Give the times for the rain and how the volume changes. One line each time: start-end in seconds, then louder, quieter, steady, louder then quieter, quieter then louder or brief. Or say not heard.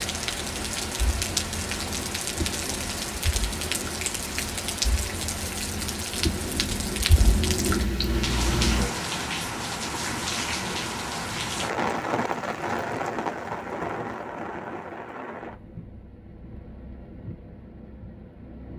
0.0-18.7 quieter.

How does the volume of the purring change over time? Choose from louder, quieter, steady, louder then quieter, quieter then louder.
louder.